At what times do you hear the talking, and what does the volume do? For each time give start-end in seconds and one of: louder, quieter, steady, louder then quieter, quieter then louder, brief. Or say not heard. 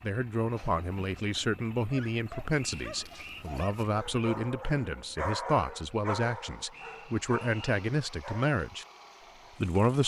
0.0-8.8 steady
9.6-10.0 brief.